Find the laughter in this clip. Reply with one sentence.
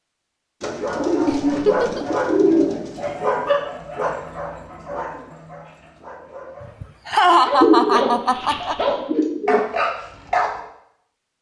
The laughter can be heard from 1.2 to 2.0 s and from 6.8 to 8.8 s.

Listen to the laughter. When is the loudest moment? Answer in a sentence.
The volume of the laughter peaks at 7 seconds.